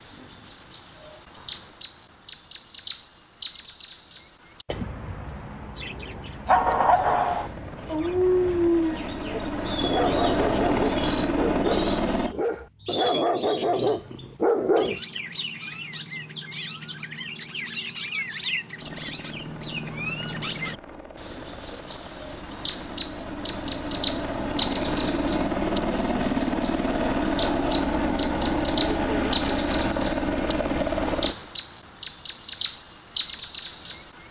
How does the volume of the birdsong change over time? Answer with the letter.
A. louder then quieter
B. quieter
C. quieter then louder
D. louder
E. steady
D.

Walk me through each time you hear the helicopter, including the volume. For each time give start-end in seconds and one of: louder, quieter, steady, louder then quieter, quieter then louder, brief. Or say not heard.
6.5-12.3 louder
18.8-31.4 louder.